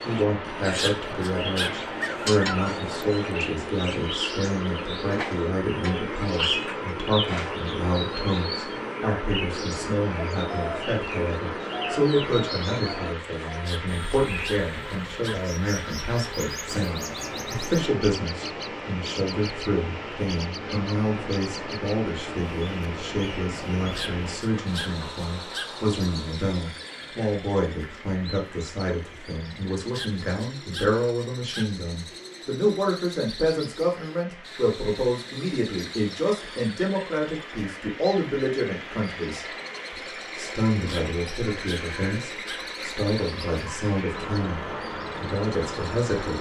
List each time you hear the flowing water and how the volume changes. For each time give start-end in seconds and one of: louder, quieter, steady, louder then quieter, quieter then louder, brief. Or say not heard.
0.0-46.3 quieter then louder.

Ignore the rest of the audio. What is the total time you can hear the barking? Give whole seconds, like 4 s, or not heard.
9 s.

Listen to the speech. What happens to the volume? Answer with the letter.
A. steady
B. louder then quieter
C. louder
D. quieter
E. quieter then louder
A.